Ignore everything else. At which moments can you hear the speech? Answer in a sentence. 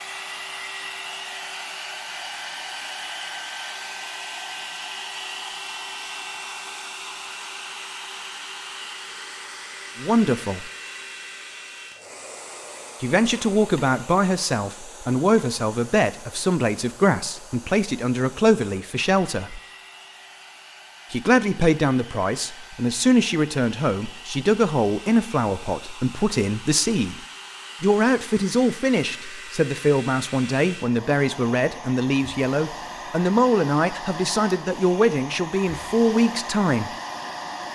You can hear the speech from 10.0 to 10.7 s, from 13.0 to 19.6 s, from 21.1 to 27.2 s and from 27.8 to 36.9 s.